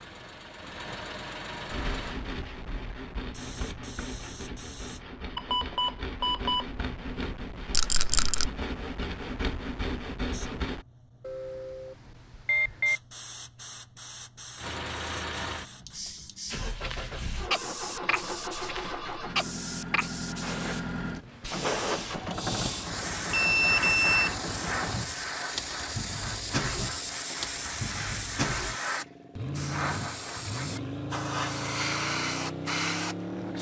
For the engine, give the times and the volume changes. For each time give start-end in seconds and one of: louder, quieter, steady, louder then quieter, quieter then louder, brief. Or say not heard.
0.0-2.2 brief
14.6-33.5 steady.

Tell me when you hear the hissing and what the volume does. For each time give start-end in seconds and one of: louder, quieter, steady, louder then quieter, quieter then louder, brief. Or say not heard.
3.3-5.0 brief
10.3-33.5 louder.